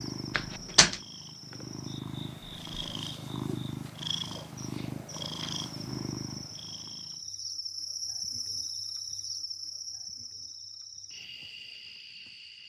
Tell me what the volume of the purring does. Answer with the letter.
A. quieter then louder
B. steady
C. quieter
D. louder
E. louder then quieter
D.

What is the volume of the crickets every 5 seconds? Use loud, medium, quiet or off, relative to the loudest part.
medium, loud, medium.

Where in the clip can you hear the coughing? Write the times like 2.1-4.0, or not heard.
0.3-1.0.